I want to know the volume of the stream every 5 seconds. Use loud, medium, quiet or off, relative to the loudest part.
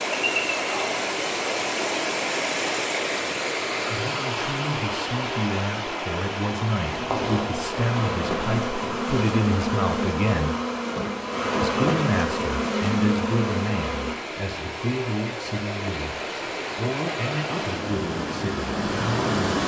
loud, medium, medium, loud.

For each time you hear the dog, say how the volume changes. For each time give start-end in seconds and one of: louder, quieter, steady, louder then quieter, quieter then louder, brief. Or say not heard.
not heard.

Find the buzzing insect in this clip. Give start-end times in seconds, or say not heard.
6.8-14.2.